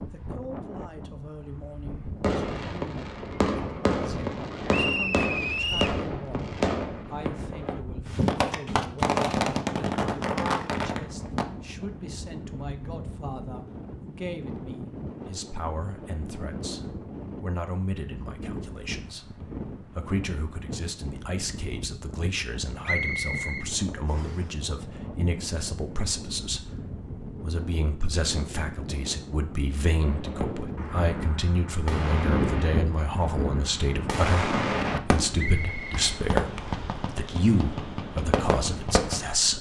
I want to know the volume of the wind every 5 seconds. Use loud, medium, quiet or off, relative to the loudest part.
medium, medium, medium, medium, medium, medium, loud, medium.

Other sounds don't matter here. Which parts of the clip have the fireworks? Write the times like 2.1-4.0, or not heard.
2.2-11.4, 30.0-39.2.